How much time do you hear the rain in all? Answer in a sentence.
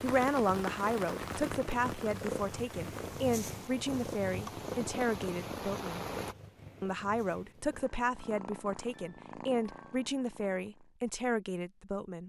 You can hear the rain for 6 seconds altogether.